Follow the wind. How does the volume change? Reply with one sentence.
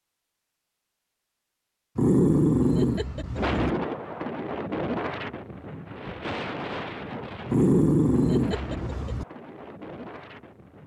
The loudness of the wind goes down.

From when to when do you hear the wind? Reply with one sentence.
You can hear the wind from 3.4 to 10.8 s.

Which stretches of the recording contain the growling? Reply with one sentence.
The growling can be heard from 1.9 to 3.7 s and from 7.5 to 9.2 s.